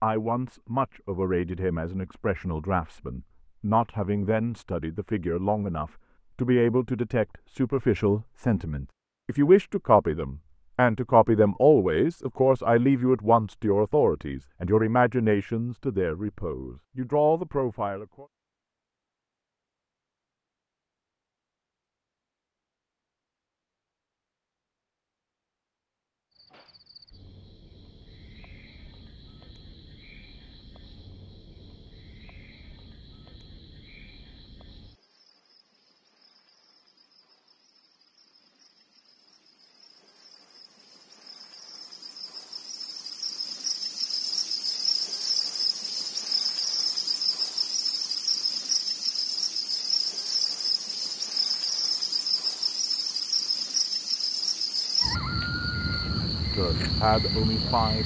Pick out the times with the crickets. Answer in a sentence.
You can hear the crickets from 26.3 to 58.0 s.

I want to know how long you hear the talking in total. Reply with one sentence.
The talking can be heard for 20 seconds in total.